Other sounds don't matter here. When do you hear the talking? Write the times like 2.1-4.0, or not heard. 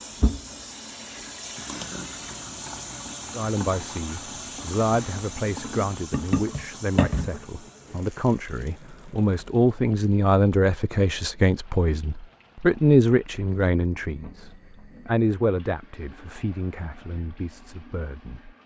3.3-18.5.